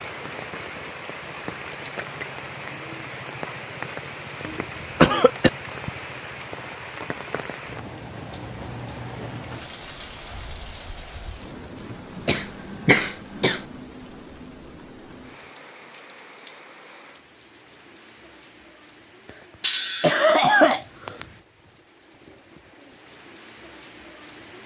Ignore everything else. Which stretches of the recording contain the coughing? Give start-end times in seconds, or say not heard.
4.5-5.5, 12.2-13.6, 19.6-21.2.